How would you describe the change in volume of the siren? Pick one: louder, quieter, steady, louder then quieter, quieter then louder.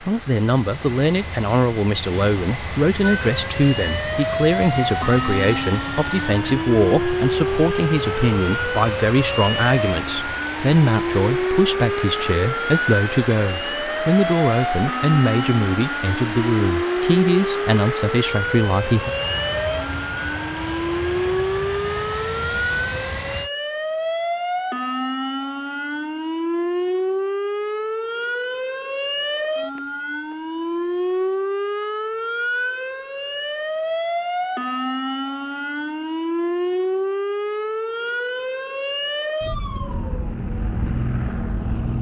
steady.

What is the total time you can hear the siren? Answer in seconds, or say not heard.
39 s.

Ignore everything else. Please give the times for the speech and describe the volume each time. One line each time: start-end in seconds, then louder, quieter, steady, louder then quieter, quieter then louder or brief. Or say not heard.
0.1-19.1 steady.